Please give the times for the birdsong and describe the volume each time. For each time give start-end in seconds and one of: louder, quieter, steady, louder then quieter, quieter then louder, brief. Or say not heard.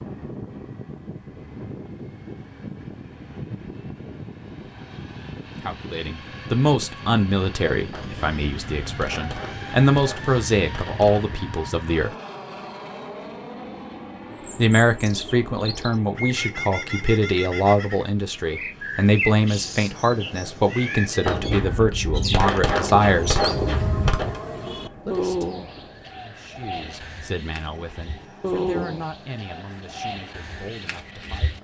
14.3-31.6 steady.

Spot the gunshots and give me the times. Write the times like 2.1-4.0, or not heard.
7.9-11.4, 21.2-24.4.